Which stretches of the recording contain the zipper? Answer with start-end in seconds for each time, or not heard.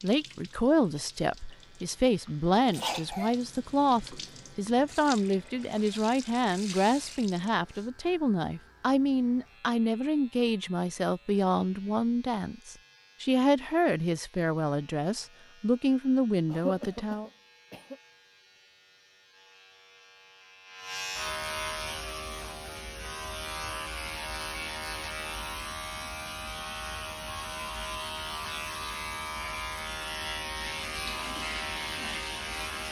not heard.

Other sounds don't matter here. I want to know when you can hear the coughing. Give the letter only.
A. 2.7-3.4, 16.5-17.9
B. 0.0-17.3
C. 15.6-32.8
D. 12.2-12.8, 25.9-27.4
A.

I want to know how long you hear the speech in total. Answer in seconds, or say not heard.
17 s.